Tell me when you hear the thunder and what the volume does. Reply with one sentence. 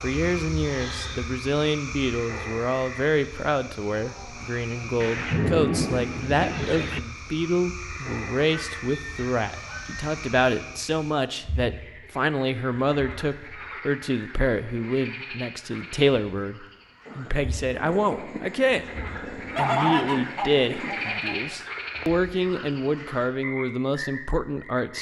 The thunder can be heard briefly from 5.0 to 7.0 s; and from 17.1 to 21.1 s, at a steady volume.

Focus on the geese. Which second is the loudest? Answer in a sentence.
The volume of the geese peaks at 20 seconds.